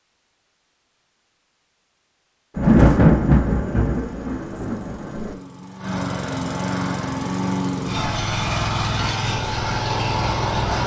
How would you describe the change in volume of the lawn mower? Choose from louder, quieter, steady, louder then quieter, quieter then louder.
louder.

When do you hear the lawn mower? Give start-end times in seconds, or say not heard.
2.6-10.8.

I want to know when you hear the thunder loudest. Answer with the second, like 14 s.
3 s.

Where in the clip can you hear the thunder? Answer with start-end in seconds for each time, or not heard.
2.5-5.3.